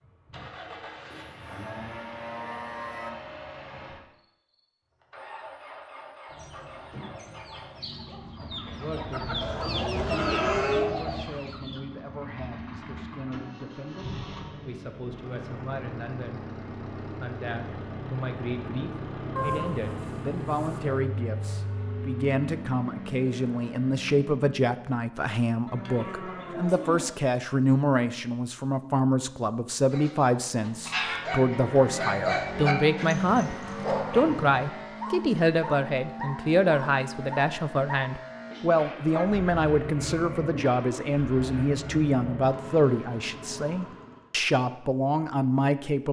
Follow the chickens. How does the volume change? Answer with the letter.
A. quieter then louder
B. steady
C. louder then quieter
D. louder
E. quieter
D.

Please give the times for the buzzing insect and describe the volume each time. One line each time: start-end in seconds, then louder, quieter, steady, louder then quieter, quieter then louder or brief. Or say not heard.
not heard.